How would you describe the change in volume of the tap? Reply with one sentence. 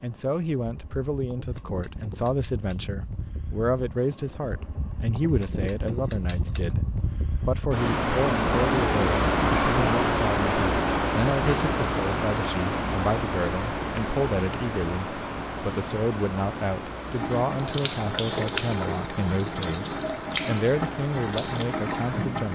The loudness of the tap stays about the same.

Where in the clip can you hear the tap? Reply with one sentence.
You can hear the tap from 17.0 to 22.4 s.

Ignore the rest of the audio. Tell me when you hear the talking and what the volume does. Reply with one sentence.
The talking can be heard from 0.0 to 22.4 s, at a steady volume.